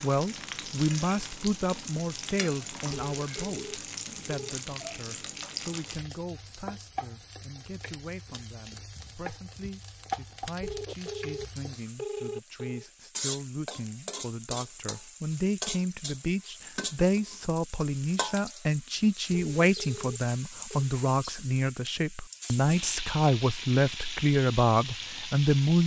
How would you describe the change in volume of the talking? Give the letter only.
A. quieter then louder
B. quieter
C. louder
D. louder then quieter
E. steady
A.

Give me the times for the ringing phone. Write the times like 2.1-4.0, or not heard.
2.9-4.5, 10.6-12.8, 19.3-20.9.